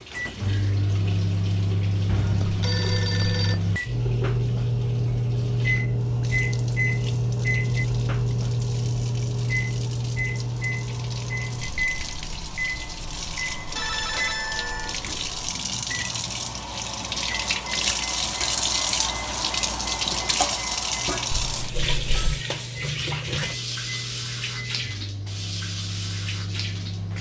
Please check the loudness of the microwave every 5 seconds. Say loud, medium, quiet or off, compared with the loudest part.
loud, loud, medium, quiet, quiet, quiet.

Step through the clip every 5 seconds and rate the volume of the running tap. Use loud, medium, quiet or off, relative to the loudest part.
quiet, quiet, medium, loud, loud, medium.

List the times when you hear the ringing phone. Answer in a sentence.
You can hear the ringing phone from 2.0 to 3.6 s, from 13.8 to 15.0 s and from 21.3 to 22.4 s.